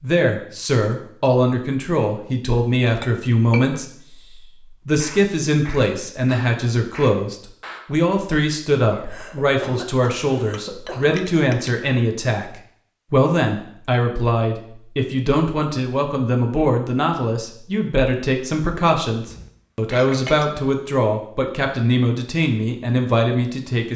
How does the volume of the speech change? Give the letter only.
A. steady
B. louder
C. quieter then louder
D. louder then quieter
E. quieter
A.